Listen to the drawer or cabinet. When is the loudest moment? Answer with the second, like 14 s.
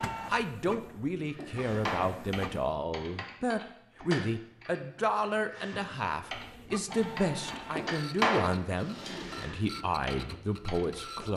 8 s.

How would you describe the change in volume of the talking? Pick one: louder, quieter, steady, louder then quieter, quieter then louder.
steady.